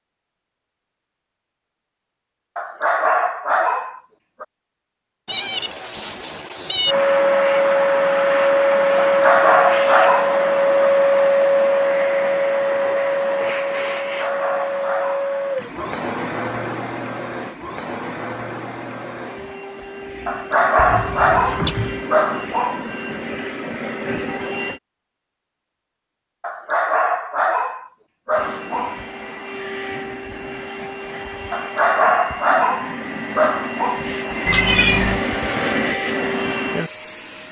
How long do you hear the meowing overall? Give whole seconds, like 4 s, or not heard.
4 s.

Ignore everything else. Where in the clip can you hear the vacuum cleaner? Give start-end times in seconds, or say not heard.
6.8-24.8, 28.3-37.4.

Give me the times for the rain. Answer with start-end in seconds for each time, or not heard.
not heard.